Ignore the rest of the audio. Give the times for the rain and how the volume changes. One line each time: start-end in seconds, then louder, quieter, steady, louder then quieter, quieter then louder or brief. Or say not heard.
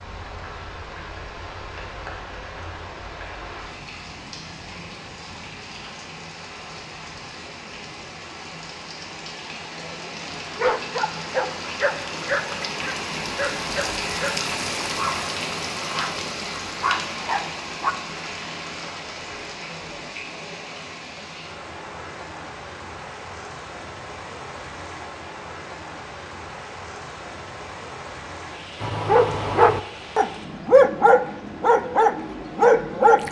0.0-33.2 louder then quieter.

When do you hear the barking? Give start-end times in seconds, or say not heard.
10.6-17.9, 28.8-33.2.